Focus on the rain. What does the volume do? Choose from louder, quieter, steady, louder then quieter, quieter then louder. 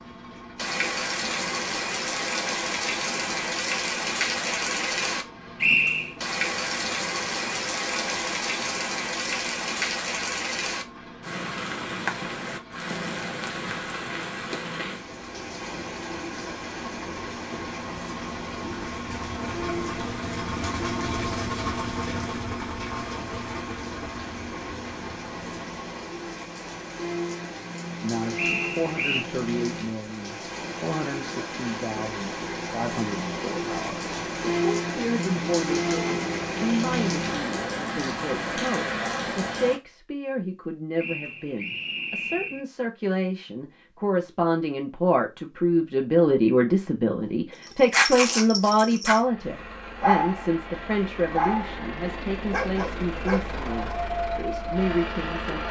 quieter then louder.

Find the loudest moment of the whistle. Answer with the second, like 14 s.
6 s.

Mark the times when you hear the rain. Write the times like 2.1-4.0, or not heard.
0.0-39.8.